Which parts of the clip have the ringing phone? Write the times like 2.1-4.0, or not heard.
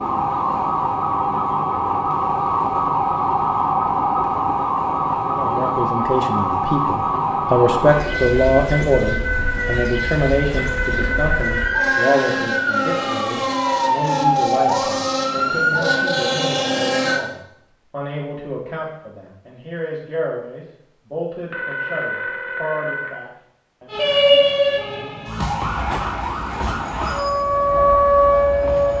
10.6-12.4, 21.5-23.2.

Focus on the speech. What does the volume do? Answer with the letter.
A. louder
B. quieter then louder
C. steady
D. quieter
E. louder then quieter
D.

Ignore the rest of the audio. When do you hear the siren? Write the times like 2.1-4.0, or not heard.
0.0-17.2, 23.9-28.9.